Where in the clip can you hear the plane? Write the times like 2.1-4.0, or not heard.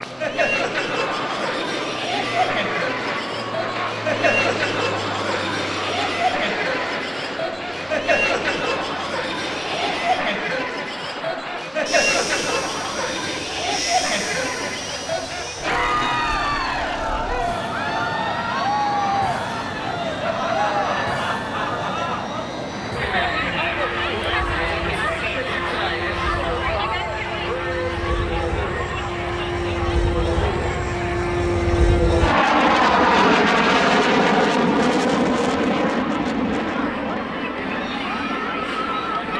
0.0-39.3.